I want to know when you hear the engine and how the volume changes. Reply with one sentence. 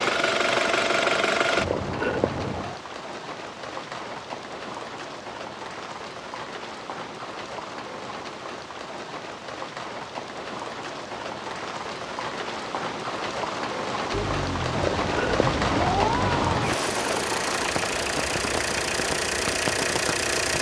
The engine can be heard briefly from 0.0 to 1.6 s; and from 14.1 to 20.5 s, getting louder.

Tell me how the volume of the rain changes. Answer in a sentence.
The loudness of the rain goes up.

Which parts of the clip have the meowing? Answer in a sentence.
The meowing can be heard from 1.6 to 2.8 s and from 14.8 to 16.8 s.